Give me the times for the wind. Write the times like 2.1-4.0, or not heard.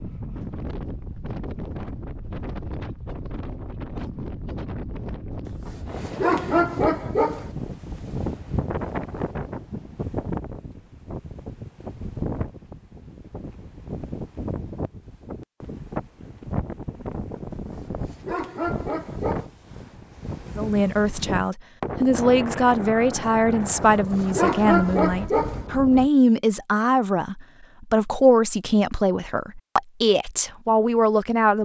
0.0-26.1.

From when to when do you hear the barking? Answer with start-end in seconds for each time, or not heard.
5.5-7.5, 17.5-19.4, 23.6-25.6.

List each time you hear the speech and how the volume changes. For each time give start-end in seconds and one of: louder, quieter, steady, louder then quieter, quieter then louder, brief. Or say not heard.
20.6-31.5 steady.